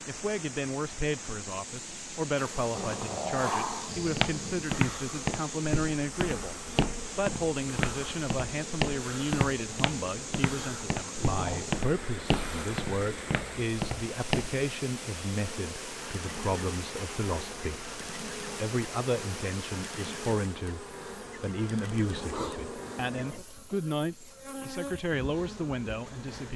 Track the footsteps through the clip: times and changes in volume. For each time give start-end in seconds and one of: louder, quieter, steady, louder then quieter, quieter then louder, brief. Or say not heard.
4.0-14.7 steady.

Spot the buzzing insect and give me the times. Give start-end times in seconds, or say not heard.
2.4-26.5.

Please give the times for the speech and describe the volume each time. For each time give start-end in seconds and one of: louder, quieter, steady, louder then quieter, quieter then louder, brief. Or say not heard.
0.1-26.5 steady.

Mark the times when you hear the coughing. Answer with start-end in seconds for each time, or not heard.
not heard.